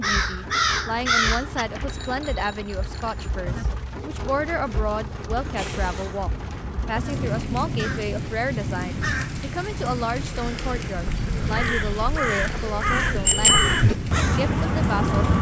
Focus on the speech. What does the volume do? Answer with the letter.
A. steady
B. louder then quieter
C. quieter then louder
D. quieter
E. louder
A.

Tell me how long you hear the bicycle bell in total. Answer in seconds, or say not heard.
3 s.